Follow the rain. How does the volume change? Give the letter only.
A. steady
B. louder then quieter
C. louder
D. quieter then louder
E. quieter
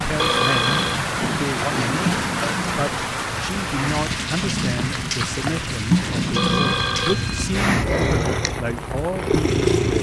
E.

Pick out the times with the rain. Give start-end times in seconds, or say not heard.
0.0-9.9.